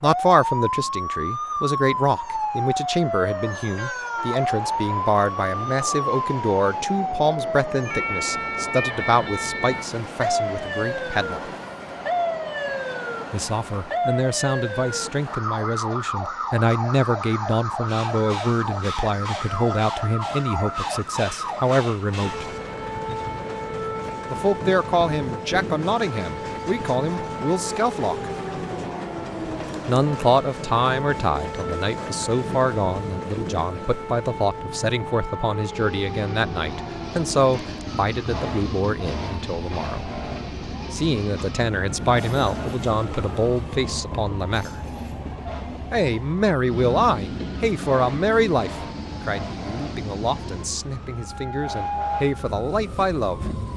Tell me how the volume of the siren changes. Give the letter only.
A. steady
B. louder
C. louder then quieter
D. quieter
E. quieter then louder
D.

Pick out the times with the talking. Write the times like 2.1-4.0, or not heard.
0.0-11.5, 13.3-22.5, 24.3-28.3, 29.9-40.1, 40.9-44.8, 45.9-53.4.